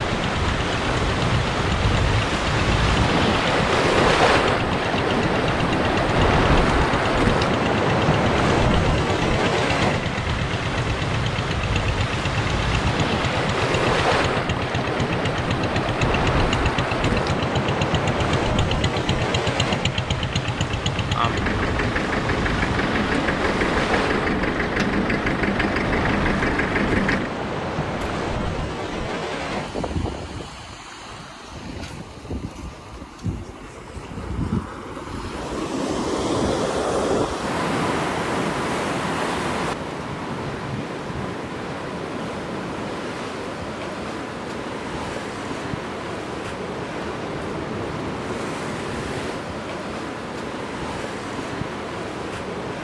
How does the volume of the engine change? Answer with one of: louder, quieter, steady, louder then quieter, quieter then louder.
louder.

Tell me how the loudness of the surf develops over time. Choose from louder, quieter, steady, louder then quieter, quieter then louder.
quieter.